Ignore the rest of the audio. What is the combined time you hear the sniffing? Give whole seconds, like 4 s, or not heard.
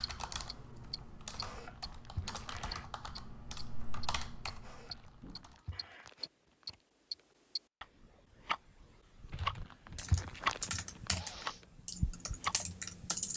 4 s.